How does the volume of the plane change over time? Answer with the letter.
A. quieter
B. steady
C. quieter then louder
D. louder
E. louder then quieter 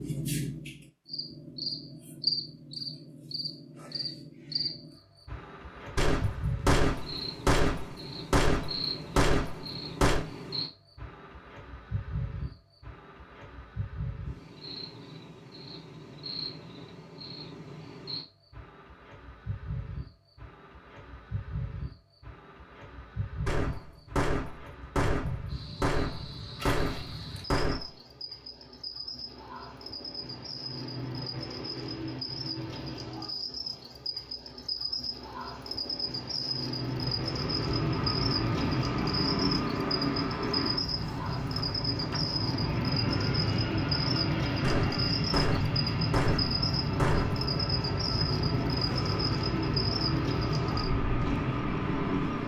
B.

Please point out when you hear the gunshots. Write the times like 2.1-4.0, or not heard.
6.0-10.2, 23.4-27.9, 44.6-47.5.